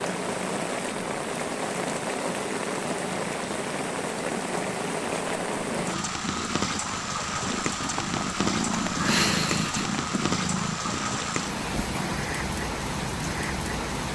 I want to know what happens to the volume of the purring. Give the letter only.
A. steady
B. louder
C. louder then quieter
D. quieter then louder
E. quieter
C.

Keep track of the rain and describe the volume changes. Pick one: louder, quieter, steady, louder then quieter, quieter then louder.
steady.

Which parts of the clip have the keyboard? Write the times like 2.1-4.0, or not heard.
not heard.